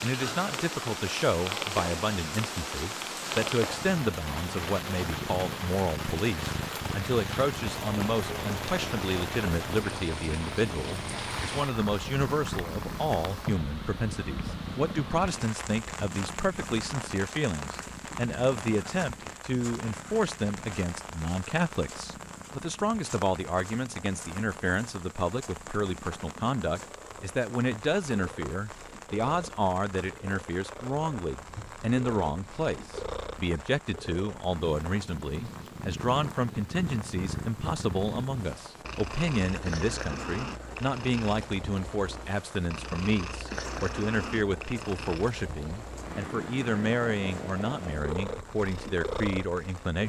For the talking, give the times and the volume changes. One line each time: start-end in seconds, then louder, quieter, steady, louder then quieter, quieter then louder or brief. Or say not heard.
0.0-50.0 steady.